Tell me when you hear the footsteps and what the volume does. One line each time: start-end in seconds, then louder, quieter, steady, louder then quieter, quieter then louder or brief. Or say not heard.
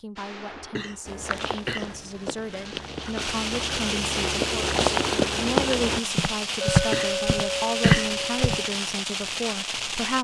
1.1-8.6 louder.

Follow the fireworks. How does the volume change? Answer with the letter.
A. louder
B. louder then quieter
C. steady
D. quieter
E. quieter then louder
A.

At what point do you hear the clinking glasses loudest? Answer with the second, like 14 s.
7 s.